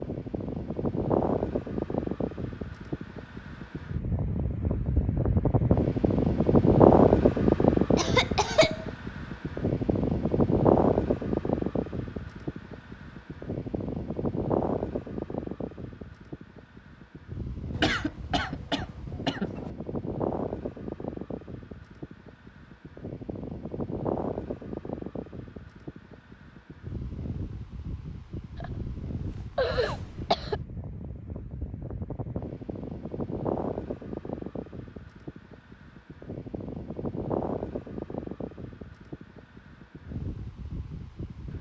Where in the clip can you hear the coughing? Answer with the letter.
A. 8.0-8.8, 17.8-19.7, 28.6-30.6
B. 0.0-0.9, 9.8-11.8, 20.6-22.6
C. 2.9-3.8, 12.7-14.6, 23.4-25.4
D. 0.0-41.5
A.